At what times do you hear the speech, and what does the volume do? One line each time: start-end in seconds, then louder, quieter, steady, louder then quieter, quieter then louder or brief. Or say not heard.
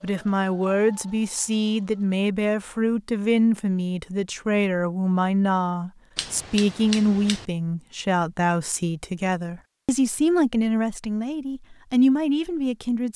0.0-13.1 steady.